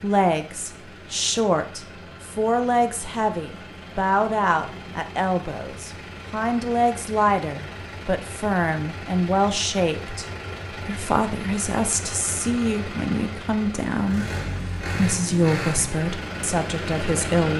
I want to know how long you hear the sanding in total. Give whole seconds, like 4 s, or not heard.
not heard.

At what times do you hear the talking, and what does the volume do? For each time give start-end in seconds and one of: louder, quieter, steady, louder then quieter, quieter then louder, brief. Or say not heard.
0.0-17.5 steady.